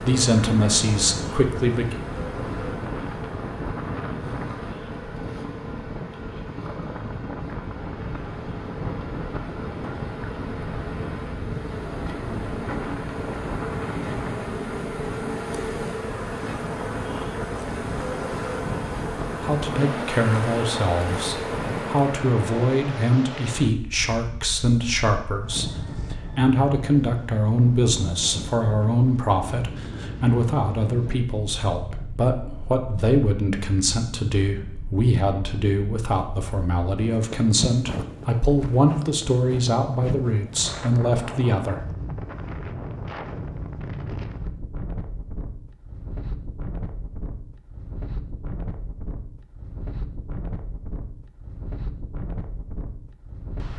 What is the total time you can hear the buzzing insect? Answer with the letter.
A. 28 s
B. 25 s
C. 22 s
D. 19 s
C.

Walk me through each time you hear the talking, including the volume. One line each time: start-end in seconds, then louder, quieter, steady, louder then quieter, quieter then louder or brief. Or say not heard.
0.0-2.0 brief
19.4-41.8 steady.